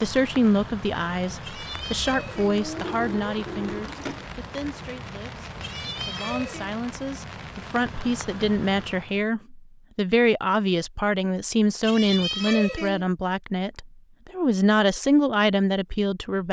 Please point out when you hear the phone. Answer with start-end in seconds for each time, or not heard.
2.8-4.3.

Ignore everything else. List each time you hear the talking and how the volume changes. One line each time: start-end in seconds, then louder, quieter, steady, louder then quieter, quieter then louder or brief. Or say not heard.
0.0-16.4 quieter then louder.